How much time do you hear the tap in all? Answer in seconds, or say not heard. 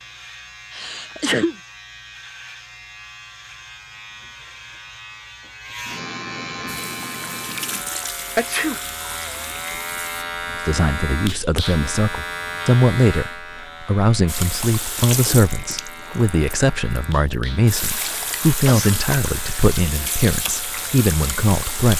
11 s.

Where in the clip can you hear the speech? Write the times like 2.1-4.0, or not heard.
10.5-21.9.